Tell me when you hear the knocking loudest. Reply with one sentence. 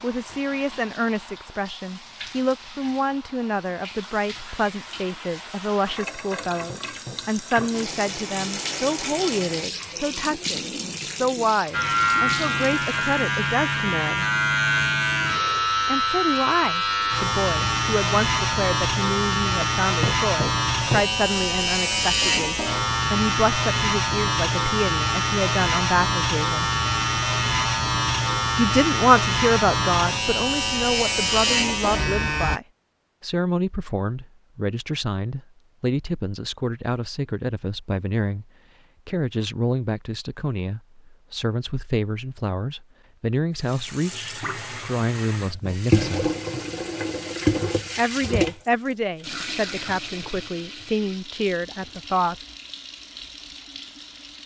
The volume of the knocking peaks at 21 seconds.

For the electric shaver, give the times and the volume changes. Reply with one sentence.
You can hear the electric shaver from 11.7 to 32.6 s, at a steady volume.